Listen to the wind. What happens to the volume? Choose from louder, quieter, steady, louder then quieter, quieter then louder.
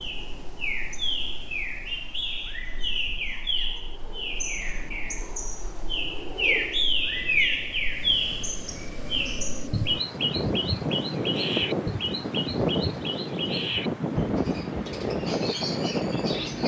louder.